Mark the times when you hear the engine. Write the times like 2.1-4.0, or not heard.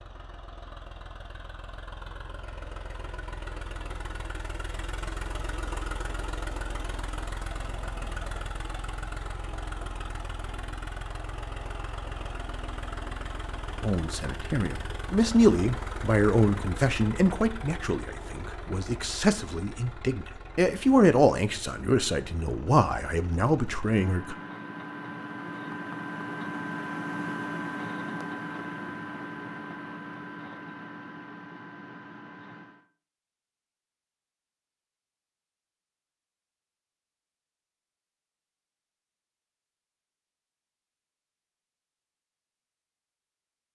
0.0-32.9.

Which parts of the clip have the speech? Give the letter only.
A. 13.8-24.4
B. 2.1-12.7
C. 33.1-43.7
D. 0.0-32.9
A.